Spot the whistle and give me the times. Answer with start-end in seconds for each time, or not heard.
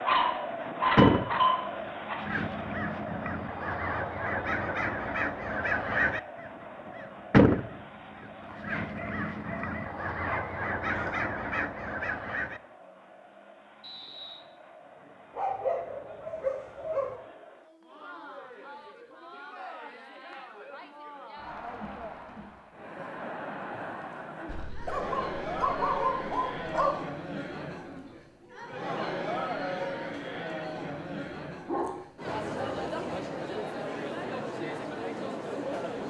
13.8-14.4.